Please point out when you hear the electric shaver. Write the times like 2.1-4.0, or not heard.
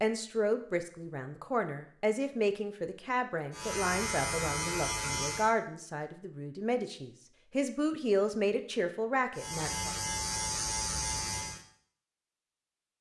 3.5-5.5, 9.3-11.7.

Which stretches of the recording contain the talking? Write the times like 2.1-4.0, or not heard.
0.0-9.9.